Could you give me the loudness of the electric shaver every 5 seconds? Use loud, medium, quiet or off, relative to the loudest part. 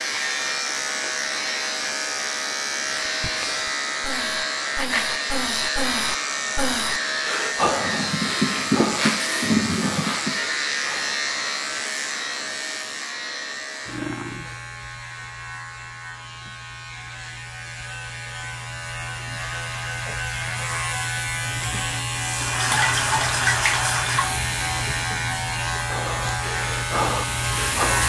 loud, loud, loud, medium, loud, loud.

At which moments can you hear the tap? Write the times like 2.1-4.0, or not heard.
7.7-10.4, 22.1-28.0.